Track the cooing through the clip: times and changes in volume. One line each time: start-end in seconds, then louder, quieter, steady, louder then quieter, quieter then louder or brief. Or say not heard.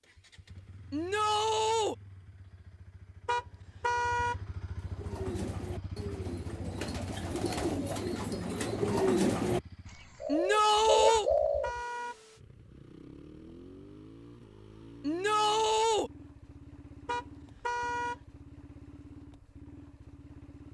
4.8-11.7 louder.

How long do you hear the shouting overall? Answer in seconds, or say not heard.
3 s.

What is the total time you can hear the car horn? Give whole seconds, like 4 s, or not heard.
3 s.